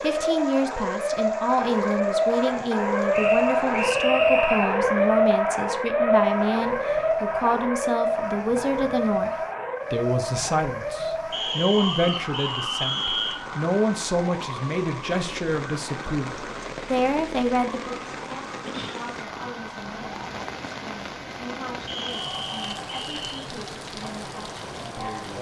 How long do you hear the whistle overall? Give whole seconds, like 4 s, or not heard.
5 s.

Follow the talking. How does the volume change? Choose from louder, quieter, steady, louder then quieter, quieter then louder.
quieter.